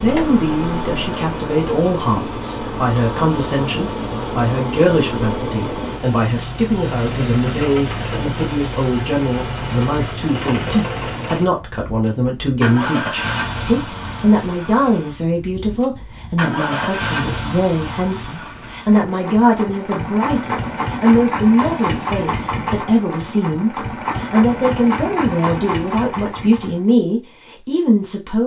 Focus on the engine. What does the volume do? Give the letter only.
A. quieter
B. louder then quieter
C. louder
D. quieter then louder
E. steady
E.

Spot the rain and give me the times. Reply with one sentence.
You can't hear the rain here.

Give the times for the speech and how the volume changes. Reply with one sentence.
The speech can be heard from 0.0 to 28.4 s, at a steady volume.